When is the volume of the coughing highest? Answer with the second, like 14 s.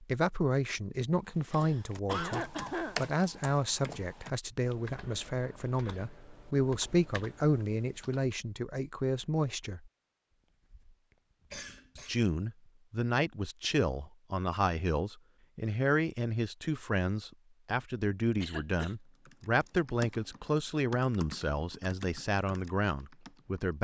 2 s.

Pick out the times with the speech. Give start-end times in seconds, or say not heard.
0.0-9.9, 11.9-23.7.